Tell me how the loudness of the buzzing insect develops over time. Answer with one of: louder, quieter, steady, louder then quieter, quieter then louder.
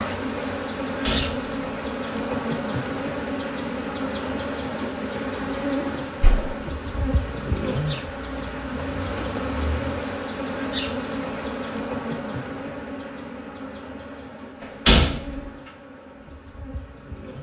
quieter.